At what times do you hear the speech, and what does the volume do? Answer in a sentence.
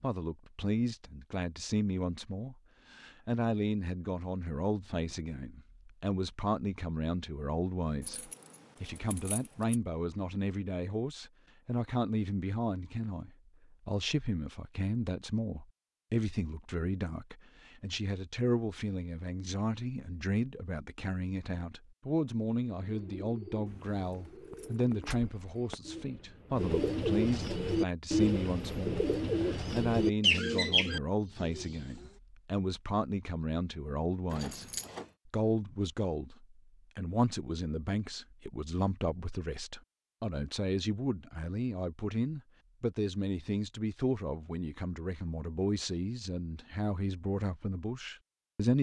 The speech can be heard from 0.0 to 48.7 s, at a steady volume.